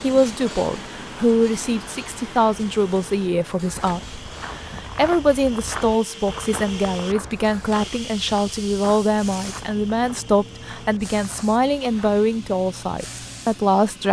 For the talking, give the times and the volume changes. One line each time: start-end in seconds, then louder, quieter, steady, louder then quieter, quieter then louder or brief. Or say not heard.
0.0-14.0 steady.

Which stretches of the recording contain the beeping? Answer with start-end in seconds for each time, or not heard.
not heard.